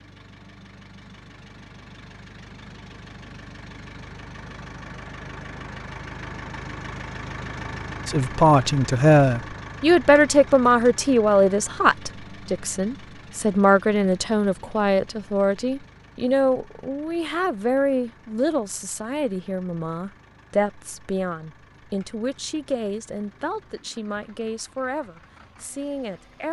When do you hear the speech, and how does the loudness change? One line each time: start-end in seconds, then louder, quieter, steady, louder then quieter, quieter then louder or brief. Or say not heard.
8.1-26.4 quieter.